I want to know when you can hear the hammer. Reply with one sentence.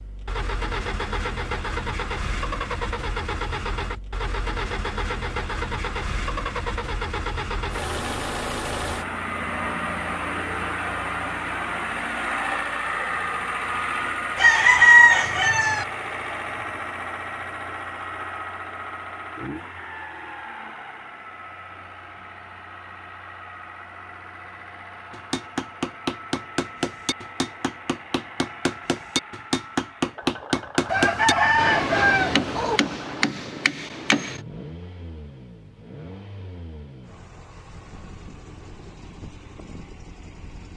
You can hear the hammer from 25.1 to 34.4 s.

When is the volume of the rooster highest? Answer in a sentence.
The loudest moment of the rooster is at 15 seconds.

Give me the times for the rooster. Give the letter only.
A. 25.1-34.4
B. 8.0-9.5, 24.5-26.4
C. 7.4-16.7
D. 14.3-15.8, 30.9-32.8
D.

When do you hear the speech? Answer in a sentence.
You can't hear the speech here.